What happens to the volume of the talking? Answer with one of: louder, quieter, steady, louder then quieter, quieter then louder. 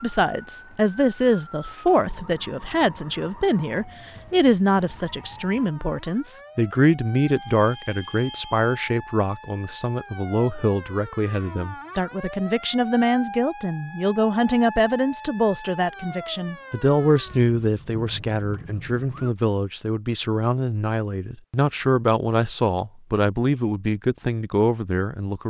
steady.